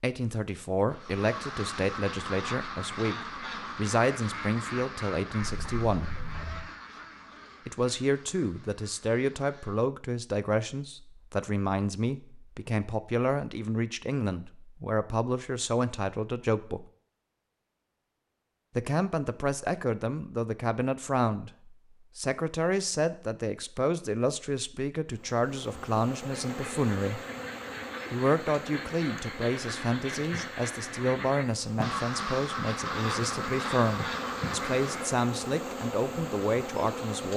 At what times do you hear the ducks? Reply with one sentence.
You can hear the ducks from 0.9 to 9.8 s and from 26.3 to 35.2 s.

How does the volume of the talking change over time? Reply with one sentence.
The volume of the talking stays about the same.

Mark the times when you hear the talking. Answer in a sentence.
The talking can be heard from 0.0 to 6.1 s, from 7.7 to 16.9 s, from 18.8 to 27.2 s and from 28.1 to 37.3 s.